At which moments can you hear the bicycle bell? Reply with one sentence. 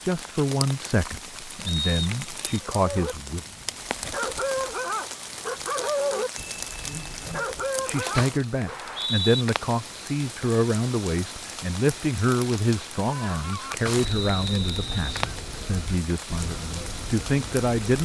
You can hear the bicycle bell from 6.3 to 7.5 s.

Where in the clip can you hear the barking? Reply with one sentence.
The barking can be heard from 2.5 to 8.9 s.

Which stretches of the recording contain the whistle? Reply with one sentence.
The whistle can be heard from 1.6 to 2.6 s, from 8.7 to 9.4 s and from 14.1 to 15.1 s.